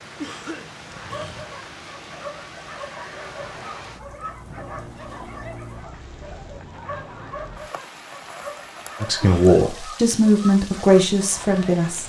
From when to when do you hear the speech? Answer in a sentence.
The speech can be heard from 9.0 to 12.0 s.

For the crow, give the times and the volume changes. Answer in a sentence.
You can't hear the crow here.